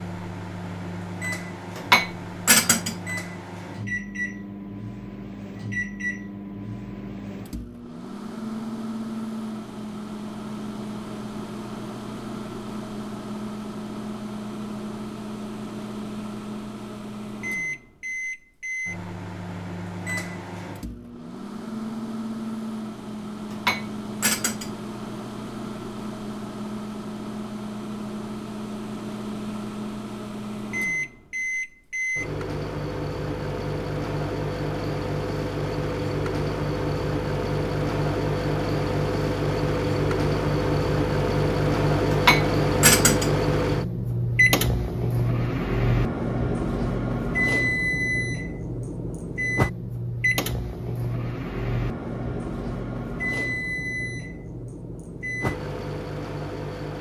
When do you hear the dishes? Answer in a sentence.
You can hear the dishes from 1.8 to 3.0 s, from 23.5 to 24.7 s and from 42.1 to 43.3 s.